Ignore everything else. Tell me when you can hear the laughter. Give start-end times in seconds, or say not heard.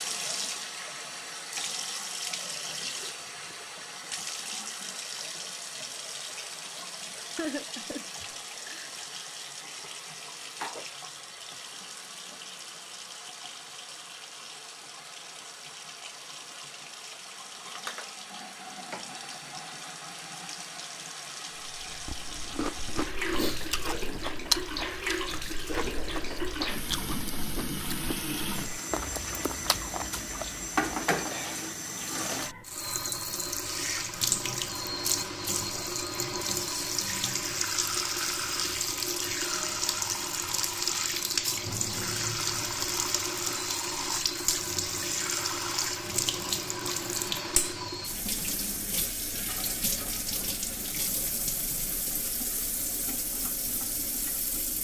7.3-8.9.